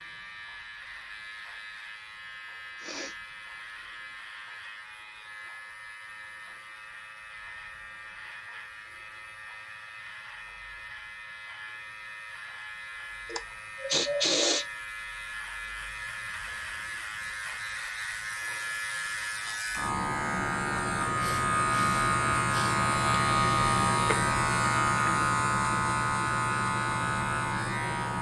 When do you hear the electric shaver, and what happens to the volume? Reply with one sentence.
The electric shaver can be heard from 0.0 to 28.1 s, getting louder.